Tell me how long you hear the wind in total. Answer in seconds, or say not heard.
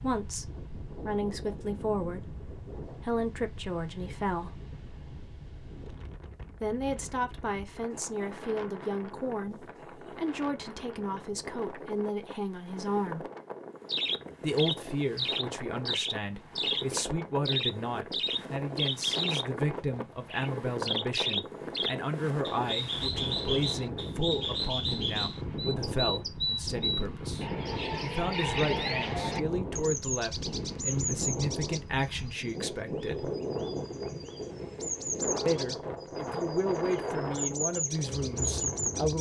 39 s.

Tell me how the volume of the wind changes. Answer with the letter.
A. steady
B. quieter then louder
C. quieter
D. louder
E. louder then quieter
D.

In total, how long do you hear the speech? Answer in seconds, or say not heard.
34 s.